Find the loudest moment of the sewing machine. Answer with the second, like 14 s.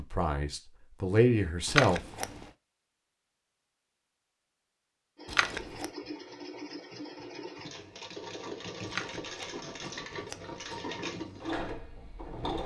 11 s.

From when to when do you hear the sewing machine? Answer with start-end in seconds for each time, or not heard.
5.2-12.6.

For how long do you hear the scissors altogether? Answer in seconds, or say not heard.
3 s.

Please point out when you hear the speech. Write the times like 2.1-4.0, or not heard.
0.0-2.0.